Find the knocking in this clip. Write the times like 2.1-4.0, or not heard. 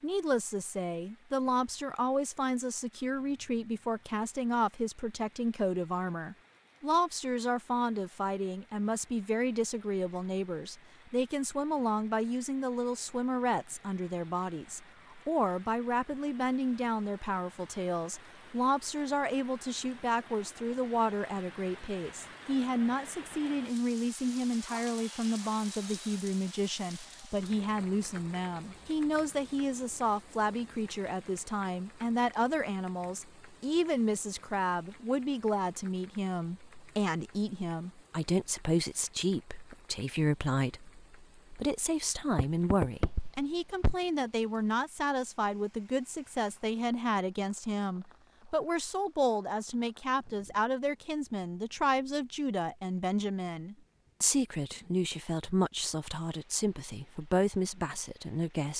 42.3-44.0.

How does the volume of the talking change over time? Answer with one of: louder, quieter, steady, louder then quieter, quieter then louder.
steady.